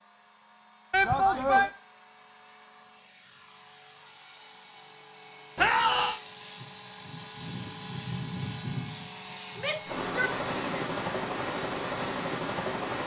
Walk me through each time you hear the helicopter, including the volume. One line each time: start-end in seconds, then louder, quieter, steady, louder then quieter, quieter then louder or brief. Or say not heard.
0.0-13.0 louder.